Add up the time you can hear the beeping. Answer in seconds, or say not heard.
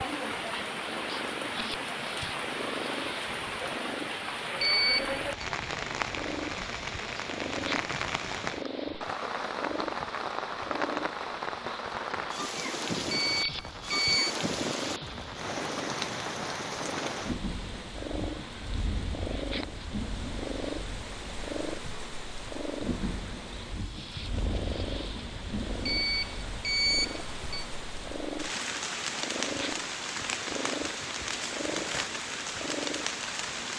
4 s.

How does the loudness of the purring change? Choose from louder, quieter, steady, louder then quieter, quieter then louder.
steady.